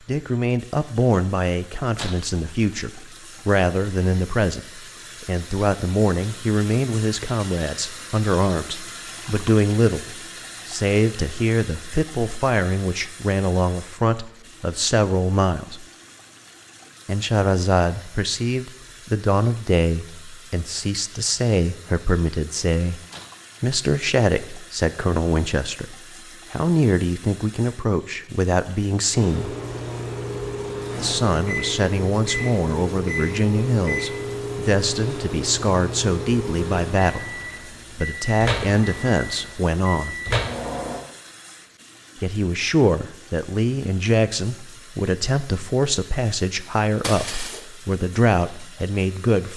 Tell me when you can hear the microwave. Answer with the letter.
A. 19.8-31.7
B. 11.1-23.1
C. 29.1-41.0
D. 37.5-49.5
C.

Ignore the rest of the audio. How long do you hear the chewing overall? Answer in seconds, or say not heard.
not heard.